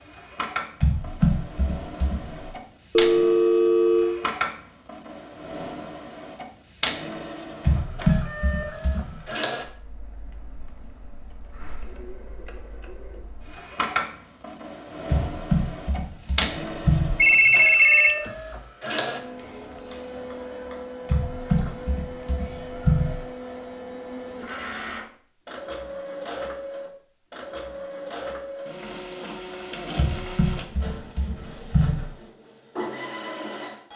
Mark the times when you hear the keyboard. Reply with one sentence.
You can hear the keyboard from 0.8 to 2.5 s, from 7.6 to 9.2 s, from 15.1 to 17.2 s, from 21.1 to 23.2 s and from 29.9 to 32.1 s.